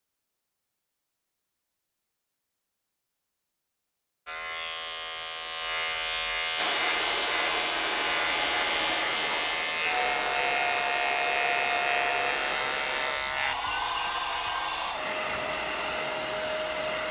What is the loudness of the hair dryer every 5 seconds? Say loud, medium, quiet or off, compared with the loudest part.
off, loud, loud, loud.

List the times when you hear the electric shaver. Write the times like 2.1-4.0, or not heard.
4.2-13.6.